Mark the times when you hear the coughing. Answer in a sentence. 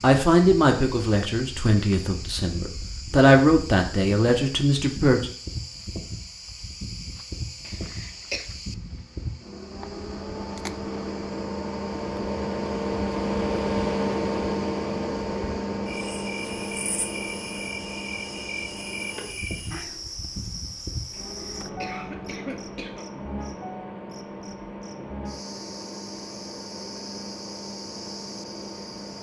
You can hear the coughing from 7.7 to 8.4 s and from 21.1 to 23.1 s.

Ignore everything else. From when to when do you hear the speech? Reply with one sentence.
You can hear the speech from 0.0 to 5.3 s.